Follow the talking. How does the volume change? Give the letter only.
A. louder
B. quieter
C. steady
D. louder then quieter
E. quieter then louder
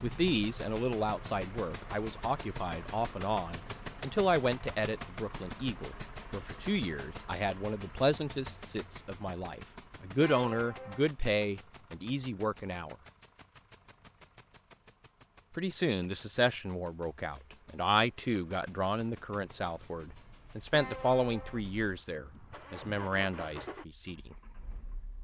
C.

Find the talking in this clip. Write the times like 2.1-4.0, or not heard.
0.0-12.9, 15.6-24.4.